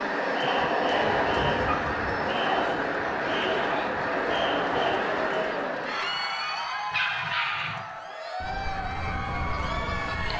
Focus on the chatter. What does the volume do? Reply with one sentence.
The volume of the chatter goes down.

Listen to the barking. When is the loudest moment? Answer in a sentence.
The loudest moment of the barking is at 7 seconds.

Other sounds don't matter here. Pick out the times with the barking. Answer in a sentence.
You can hear the barking from 0.4 to 1.9 s and from 6.9 to 7.8 s.